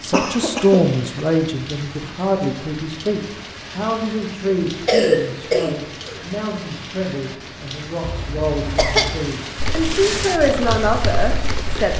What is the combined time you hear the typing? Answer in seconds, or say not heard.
2 s.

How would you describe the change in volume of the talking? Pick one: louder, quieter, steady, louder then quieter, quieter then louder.
quieter then louder.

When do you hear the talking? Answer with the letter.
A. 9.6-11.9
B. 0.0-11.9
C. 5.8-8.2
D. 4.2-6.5
B.